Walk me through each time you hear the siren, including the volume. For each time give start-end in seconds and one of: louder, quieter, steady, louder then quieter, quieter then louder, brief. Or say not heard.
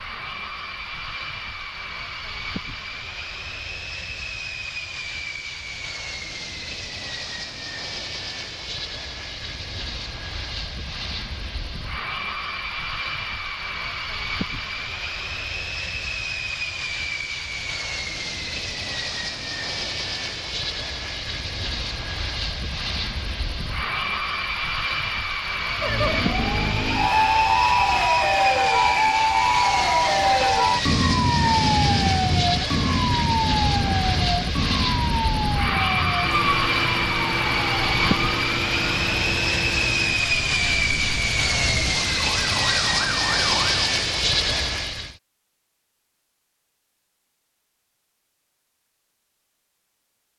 25.8-43.9 quieter.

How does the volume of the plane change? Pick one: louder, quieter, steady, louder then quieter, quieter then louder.
louder.